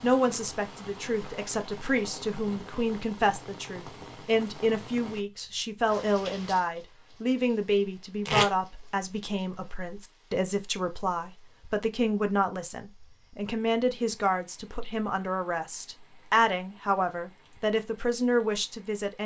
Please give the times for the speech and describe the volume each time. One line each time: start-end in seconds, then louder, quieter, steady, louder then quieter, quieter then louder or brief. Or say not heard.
0.0-19.2 steady.